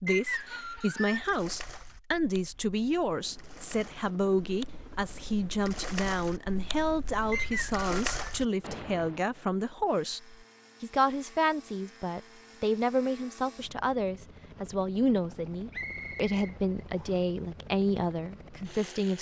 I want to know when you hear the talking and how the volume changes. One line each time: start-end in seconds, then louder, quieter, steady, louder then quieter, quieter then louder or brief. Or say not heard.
0.0-19.1 steady.